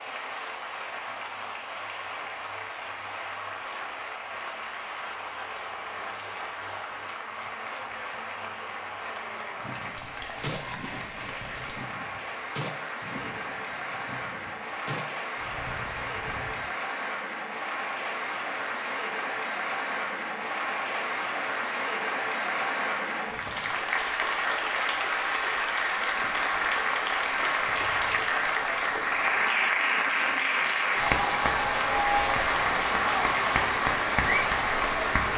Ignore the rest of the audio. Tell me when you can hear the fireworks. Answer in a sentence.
The fireworks can be heard from 9.6 to 16.6 s.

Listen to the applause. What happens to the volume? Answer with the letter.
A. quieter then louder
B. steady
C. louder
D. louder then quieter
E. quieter
C.